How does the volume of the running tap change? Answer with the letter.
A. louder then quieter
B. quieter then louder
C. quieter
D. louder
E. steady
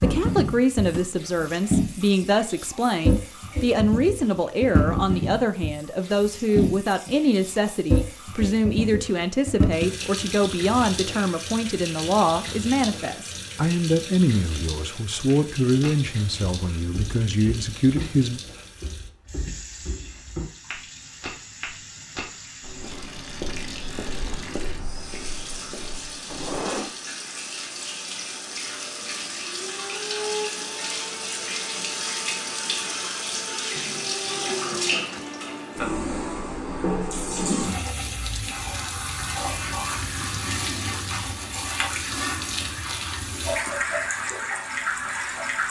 B.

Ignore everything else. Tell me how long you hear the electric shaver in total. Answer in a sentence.
You can't hear the electric shaver here.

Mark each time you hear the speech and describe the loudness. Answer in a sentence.
The speech can be heard from 0.0 to 18.4 s, at a steady volume.